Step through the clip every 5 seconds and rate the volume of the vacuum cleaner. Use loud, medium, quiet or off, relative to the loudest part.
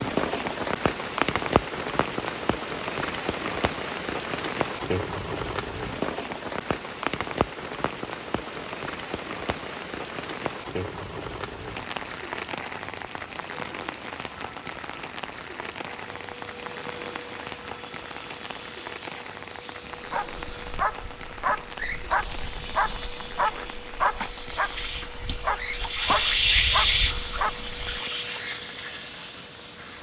off, off, off, quiet, medium, loud.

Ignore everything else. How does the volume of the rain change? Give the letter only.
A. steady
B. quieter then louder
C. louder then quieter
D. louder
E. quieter
E.